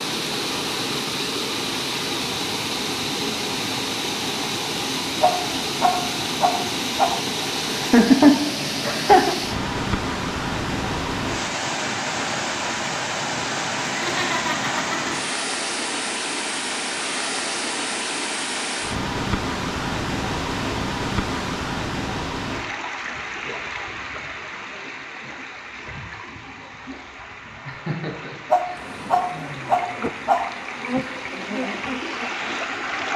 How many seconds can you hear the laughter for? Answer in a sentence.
The laughter can be heard for 5 seconds in total.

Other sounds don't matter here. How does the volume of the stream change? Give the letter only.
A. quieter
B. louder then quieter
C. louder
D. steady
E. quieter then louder
A.